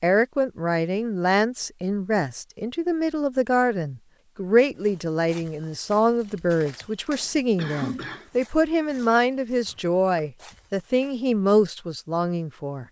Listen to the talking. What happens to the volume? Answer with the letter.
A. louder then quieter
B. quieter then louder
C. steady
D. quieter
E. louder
C.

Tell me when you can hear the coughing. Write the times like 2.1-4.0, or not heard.
7.5-8.3.